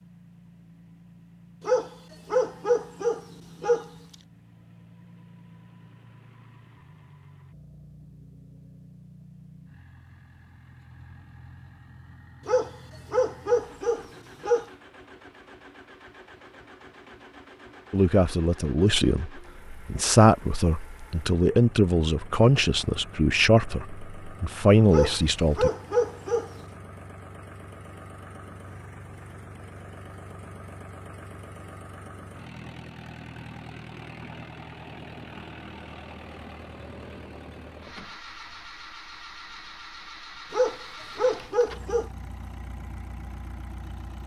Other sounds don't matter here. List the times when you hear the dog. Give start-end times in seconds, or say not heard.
1.6-3.9, 12.4-14.7, 24.9-26.5, 40.5-42.1.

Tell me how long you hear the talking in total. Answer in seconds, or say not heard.
8 s.